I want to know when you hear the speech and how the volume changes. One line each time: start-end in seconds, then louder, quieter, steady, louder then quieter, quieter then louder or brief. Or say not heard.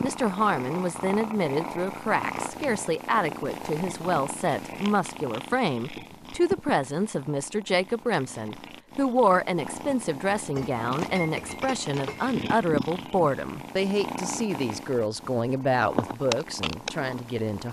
0.0-17.6 steady.